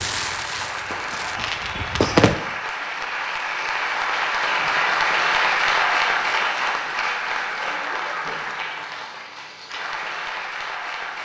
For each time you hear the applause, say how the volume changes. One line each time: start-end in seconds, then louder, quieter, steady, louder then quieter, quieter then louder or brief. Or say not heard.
0.0-11.2 louder then quieter.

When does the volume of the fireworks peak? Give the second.
2 s.